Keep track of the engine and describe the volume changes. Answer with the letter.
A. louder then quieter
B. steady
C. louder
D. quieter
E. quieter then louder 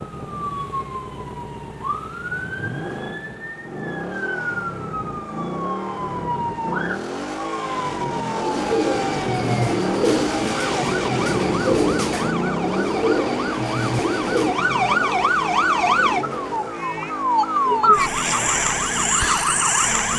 A.